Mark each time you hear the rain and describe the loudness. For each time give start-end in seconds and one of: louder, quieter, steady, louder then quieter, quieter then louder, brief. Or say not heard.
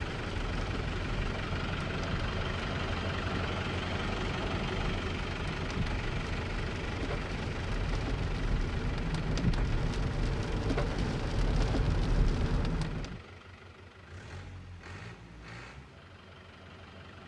0.0-13.2 louder.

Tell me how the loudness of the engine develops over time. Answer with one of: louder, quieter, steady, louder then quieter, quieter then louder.
quieter.